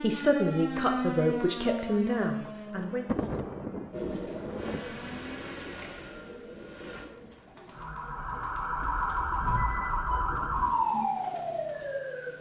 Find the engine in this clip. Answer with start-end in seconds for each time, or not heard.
4.5-7.1.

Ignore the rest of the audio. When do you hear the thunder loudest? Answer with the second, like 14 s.
3 s.